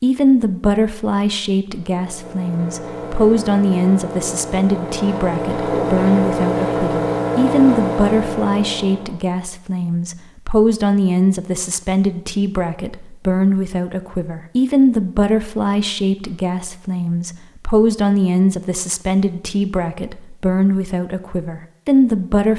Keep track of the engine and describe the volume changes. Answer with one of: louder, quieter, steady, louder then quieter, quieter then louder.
louder.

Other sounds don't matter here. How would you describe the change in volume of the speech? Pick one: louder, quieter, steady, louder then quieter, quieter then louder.
steady.